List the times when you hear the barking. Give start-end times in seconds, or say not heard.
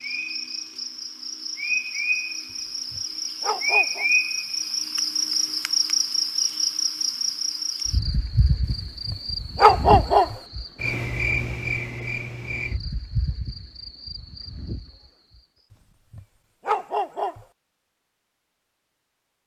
2.9-4.0, 9.1-10.3, 16.1-17.4.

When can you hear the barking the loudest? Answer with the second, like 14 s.
10 s.